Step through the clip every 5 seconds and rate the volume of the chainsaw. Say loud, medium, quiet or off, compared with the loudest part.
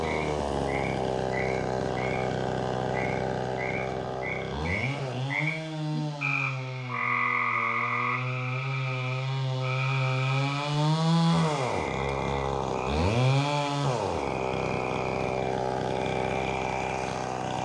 loud, medium, loud, loud.